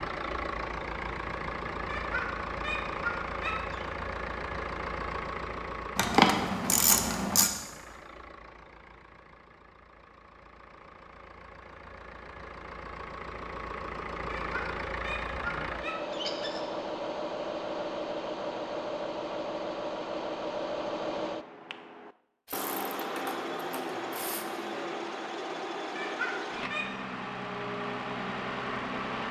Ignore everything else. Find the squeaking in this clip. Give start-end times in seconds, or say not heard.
1.9-3.9, 14.2-16.6, 25.9-26.9.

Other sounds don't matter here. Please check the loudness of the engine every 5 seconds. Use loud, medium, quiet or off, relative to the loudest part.
loud, medium, medium, loud, loud, loud.